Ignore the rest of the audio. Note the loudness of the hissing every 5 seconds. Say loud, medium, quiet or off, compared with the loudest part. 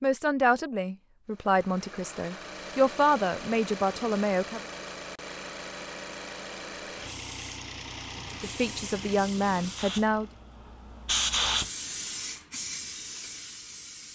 off, medium, loud.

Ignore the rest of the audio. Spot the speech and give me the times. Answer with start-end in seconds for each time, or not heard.
0.0-4.6, 8.4-10.3.